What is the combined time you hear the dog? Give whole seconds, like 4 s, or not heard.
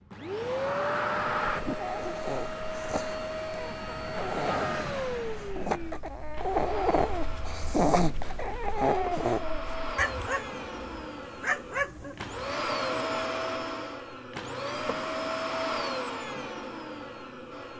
11 s.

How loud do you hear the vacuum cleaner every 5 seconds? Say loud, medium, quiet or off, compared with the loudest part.
loud, medium, loud, loud.